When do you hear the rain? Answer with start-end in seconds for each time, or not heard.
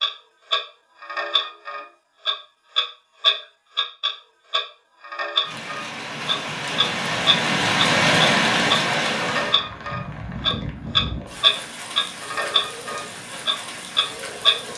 5.4-14.7.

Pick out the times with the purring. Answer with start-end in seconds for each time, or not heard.
not heard.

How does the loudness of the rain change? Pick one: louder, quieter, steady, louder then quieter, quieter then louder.
louder then quieter.